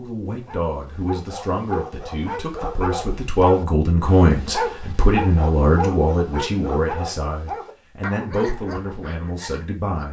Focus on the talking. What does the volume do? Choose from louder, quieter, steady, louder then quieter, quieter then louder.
louder then quieter.